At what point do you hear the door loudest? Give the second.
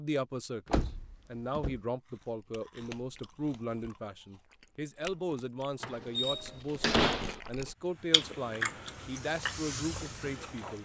7 s.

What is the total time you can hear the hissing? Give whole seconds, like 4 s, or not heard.
3 s.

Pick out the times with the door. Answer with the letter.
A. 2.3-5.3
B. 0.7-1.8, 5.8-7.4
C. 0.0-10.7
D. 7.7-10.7
B.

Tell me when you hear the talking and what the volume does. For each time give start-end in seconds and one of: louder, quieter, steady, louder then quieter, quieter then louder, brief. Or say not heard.
0.0-10.7 steady.